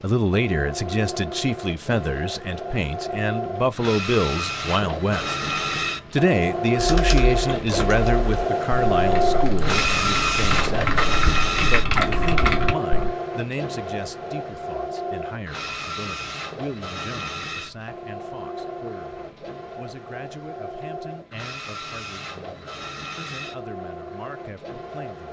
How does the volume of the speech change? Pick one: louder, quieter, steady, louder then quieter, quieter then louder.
quieter.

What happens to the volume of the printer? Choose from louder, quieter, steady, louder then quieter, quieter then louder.
louder then quieter.